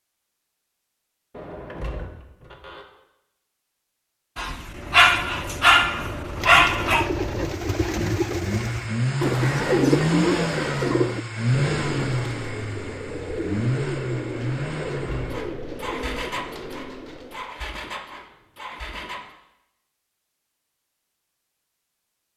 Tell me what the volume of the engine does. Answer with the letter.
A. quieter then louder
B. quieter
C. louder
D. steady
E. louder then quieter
E.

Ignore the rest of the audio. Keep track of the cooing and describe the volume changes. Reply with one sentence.
The loudness of the cooing goes up, then down.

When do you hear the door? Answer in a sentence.
The door can be heard from 1.3 to 2.9 s and from 14.8 to 15.4 s.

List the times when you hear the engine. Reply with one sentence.
The engine can be heard from 4.7 to 19.4 s.